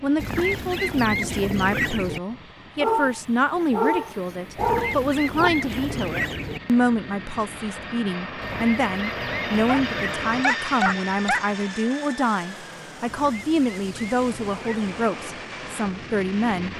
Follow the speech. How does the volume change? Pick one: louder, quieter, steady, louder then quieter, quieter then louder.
steady.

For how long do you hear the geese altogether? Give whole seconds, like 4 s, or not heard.
8 s.